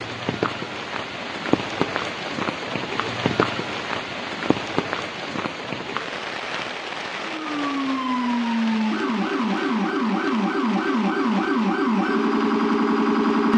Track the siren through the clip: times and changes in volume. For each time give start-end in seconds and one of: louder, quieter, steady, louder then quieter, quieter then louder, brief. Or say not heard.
7.2-13.5 steady.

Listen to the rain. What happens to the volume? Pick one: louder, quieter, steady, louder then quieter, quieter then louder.
quieter.